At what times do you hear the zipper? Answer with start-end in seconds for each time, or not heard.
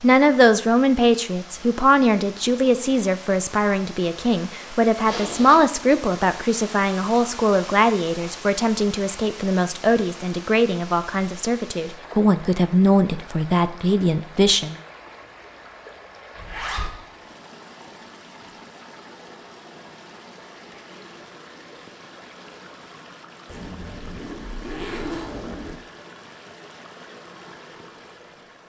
5.0-5.7, 16.4-16.9, 23.4-25.8.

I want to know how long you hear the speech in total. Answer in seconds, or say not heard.
15 s.